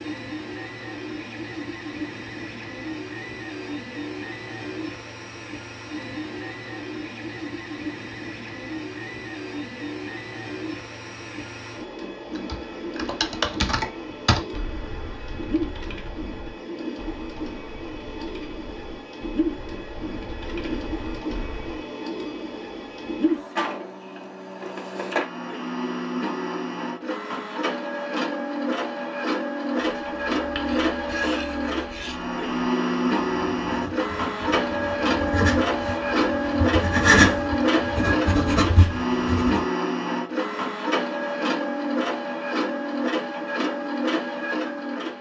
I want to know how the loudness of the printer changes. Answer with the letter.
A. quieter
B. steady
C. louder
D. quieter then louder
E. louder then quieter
C.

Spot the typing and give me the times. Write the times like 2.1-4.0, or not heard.
12.3-21.9.